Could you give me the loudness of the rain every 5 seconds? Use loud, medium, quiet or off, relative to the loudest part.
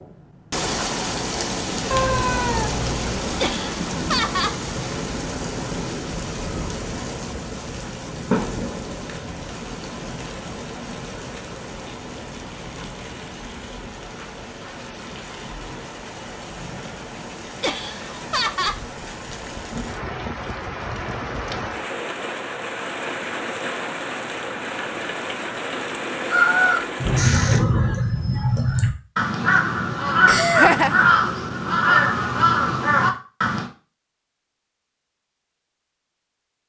loud, loud, medium, medium, loud, loud, off, off.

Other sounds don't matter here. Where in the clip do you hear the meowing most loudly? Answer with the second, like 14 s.
2 s.